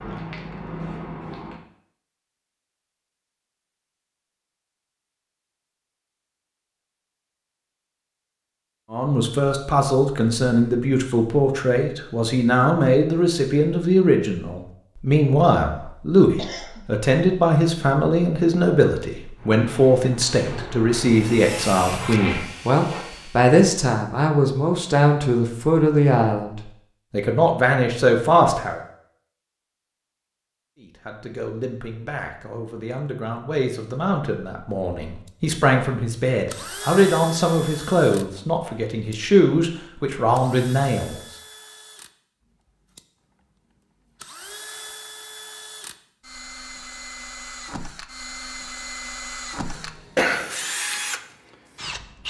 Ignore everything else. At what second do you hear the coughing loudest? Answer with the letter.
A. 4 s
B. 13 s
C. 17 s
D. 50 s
D.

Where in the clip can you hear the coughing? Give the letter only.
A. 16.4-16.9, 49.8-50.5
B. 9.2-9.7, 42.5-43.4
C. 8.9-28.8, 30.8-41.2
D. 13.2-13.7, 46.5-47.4
A.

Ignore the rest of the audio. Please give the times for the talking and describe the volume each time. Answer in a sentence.
You can hear the talking from 8.9 to 28.8 s, at a steady volume; and from 30.8 to 41.2 s, getting louder.